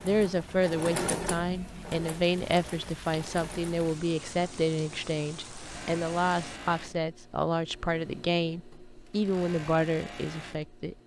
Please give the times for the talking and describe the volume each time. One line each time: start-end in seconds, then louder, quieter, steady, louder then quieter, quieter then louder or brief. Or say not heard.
0.0-10.9 steady.